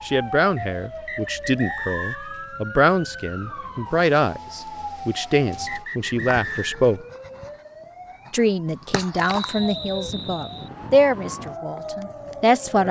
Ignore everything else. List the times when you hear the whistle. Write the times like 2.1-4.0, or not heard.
0.6-2.3, 5.2-6.9, 9.2-10.7.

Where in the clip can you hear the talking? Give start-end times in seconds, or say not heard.
0.0-7.0, 8.3-12.8.